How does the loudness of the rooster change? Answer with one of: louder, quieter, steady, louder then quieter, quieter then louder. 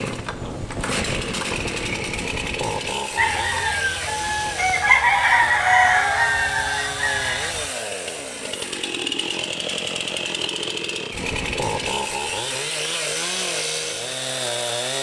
louder then quieter.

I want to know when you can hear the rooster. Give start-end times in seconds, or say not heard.
3.1-7.7.